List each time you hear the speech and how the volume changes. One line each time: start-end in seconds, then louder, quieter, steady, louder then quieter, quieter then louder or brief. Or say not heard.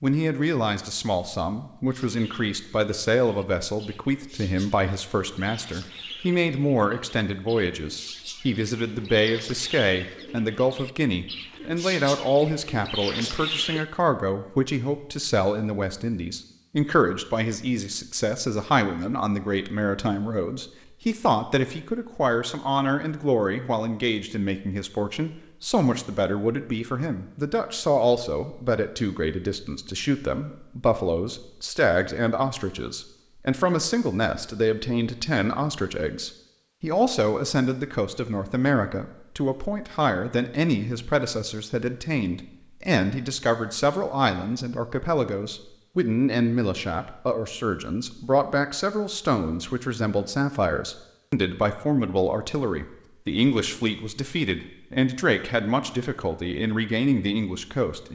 0.0-58.0 steady.